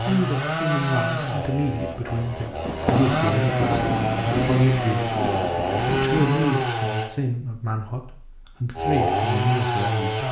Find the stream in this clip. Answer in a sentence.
You can't hear the stream here.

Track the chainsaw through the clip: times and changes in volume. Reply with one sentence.
You can hear the chainsaw from 0.0 to 7.1 s, getting quieter then louder; and briefly from 8.8 to 10.2 s.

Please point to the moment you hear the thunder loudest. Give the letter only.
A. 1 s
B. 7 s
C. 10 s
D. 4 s
D.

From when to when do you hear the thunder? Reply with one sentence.
You can hear the thunder from 2.6 to 6.5 s.